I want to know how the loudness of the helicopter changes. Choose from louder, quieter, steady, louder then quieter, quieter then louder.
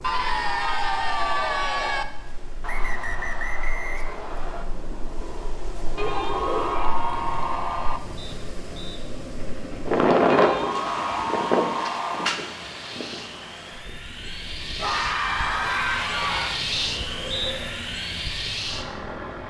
louder.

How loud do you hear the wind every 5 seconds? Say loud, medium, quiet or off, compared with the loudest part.
quiet, medium, loud, quiet.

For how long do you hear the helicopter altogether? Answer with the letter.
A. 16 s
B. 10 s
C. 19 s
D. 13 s
B.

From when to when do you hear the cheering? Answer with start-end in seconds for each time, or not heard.
0.0-2.0, 6.0-8.0, 10.3-12.3, 14.8-16.6.